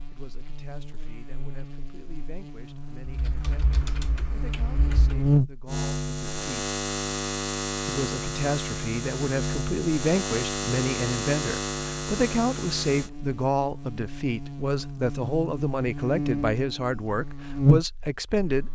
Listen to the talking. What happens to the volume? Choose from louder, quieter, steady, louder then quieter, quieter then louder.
louder.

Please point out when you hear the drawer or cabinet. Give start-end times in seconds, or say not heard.
not heard.